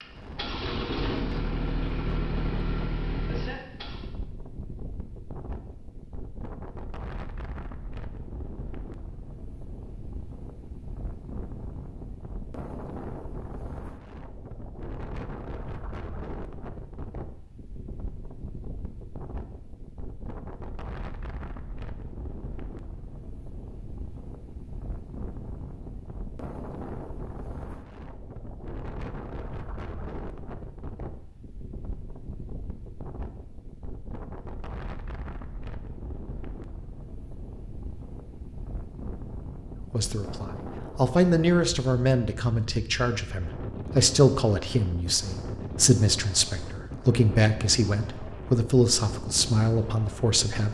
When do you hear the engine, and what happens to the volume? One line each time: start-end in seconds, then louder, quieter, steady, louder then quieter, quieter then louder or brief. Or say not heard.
0.0-4.1 steady.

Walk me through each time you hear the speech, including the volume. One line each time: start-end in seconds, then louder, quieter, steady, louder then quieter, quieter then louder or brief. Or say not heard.
39.9-50.6 steady.